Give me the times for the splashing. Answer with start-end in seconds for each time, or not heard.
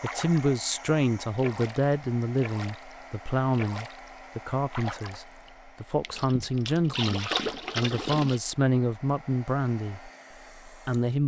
0.0-0.6, 1.4-8.4.